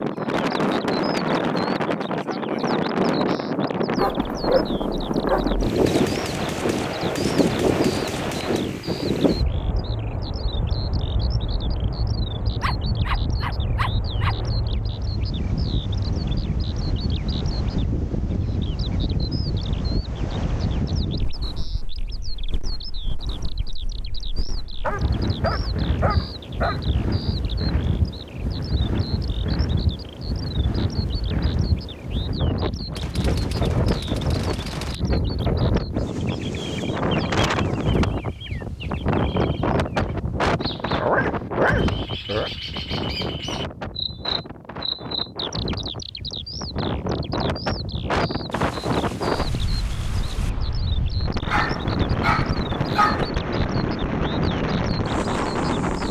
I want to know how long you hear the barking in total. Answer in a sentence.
You can hear the barking for 9 seconds altogether.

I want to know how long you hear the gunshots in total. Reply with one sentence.
The gunshots can be heard for 7 seconds in total.